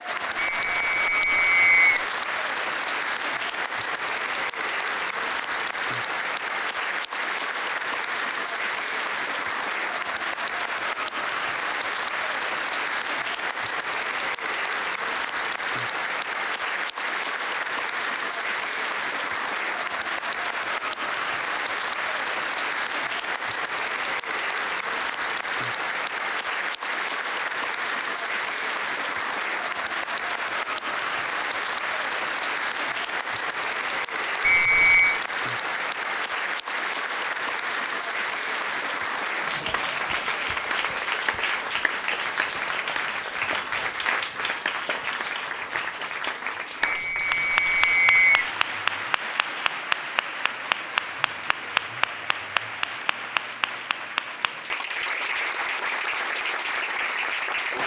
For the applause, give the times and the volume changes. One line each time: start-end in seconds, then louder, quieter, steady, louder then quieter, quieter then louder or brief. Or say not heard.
0.0-57.8 steady.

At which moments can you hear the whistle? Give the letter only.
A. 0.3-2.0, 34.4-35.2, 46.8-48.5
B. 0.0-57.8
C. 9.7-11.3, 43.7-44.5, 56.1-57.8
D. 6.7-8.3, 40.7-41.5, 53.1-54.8
A.